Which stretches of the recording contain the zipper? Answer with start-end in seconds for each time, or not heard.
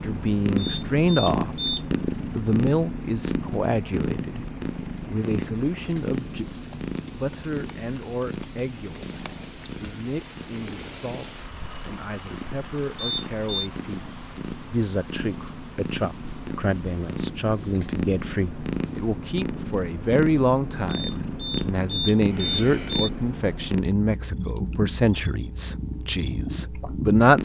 not heard.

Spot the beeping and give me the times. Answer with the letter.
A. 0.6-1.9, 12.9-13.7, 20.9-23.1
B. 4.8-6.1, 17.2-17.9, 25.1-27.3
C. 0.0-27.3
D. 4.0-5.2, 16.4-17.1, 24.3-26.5
A.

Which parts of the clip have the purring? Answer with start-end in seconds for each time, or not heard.
0.0-27.3.